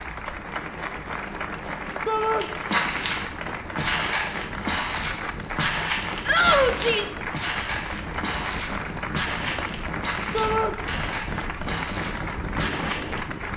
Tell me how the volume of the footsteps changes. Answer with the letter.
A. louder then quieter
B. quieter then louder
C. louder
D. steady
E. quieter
E.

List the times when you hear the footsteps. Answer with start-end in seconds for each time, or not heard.
2.4-13.4.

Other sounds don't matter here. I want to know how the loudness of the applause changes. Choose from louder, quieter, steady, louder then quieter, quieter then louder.
steady.